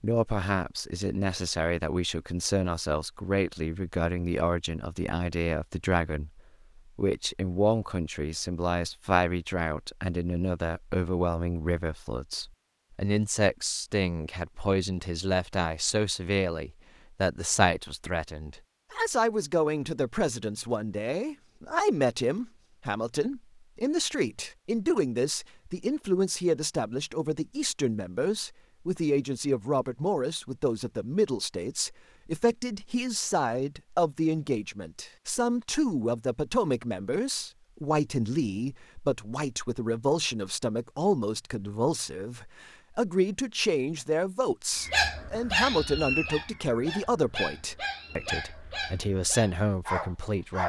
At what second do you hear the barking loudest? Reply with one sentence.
The volume of the barking peaks at 45 seconds.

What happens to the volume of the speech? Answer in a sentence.
The volume of the speech stays about the same.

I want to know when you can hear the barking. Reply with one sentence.
The barking can be heard from 44.8 to 50.6 s.